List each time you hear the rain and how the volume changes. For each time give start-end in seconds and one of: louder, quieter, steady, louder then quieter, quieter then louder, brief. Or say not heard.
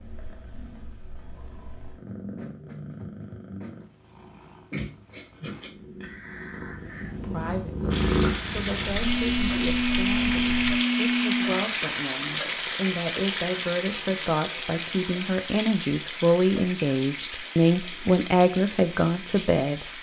7.9-19.9 quieter.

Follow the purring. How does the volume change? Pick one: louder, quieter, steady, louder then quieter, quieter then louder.
louder then quieter.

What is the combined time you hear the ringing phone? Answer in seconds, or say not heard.
3 s.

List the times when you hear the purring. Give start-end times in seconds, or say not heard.
0.0-10.8.